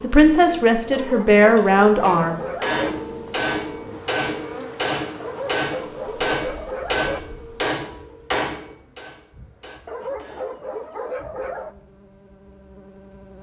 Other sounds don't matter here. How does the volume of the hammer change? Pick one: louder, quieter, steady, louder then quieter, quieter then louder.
quieter.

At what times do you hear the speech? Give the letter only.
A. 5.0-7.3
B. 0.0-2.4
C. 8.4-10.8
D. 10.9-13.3
B.